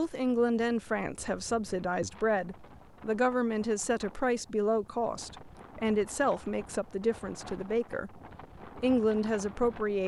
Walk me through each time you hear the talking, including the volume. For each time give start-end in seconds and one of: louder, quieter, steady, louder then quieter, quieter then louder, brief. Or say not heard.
0.0-10.0 steady.